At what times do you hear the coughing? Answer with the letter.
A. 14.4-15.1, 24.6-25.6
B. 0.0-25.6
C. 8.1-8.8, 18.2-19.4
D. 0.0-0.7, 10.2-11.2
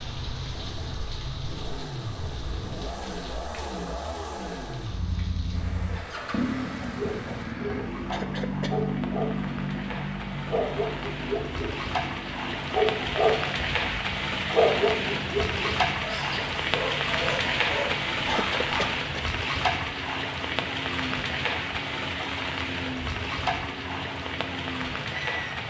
C.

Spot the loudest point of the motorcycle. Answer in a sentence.
The loudest moment of the motorcycle is at 9 seconds.